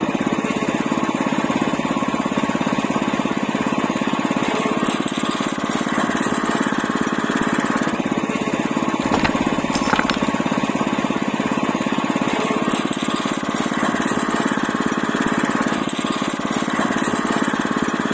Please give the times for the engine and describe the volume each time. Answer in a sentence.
The engine can be heard from 0.0 to 18.0 s, at a steady volume.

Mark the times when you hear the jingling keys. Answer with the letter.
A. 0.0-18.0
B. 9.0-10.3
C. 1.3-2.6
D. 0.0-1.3
B.